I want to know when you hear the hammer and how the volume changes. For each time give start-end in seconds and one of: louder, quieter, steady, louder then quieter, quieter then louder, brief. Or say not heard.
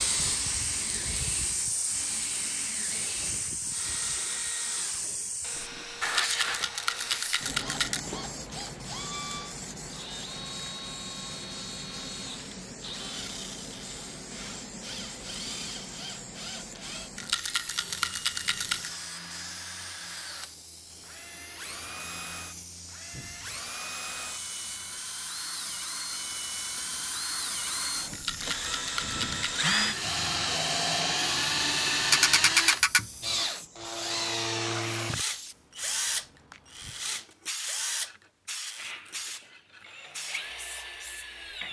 not heard.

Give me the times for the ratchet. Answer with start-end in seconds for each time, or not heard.
32.1-33.0.